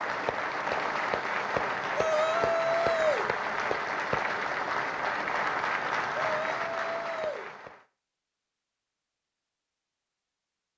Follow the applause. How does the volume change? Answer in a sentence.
The volume of the applause stays about the same.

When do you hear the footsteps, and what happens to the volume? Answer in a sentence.
The footsteps can't be heard in this clip.